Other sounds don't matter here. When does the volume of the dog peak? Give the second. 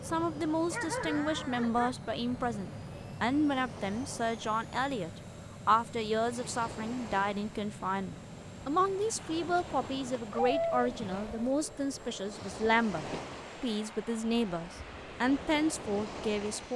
11 s.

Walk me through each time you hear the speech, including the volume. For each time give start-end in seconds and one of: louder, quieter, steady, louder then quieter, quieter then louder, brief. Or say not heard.
0.0-16.7 steady.